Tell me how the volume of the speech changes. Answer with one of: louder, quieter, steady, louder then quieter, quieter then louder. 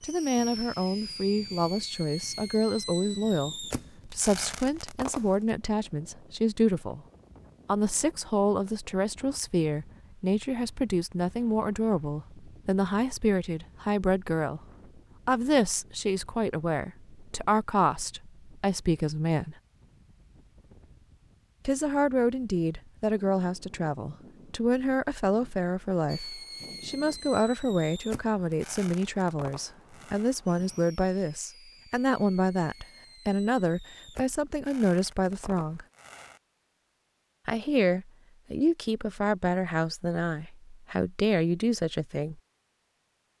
steady.